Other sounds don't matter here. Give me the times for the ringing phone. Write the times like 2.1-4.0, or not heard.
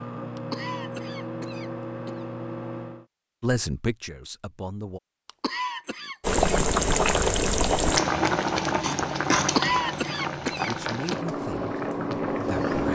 not heard.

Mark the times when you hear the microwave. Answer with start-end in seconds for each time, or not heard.
0.0-3.0.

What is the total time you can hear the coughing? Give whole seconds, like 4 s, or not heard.
5 s.